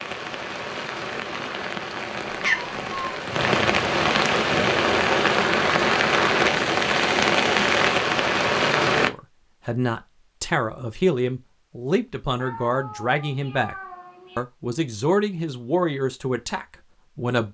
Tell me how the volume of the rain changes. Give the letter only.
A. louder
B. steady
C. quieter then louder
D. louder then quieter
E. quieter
A.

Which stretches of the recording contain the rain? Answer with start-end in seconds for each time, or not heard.
0.0-9.1.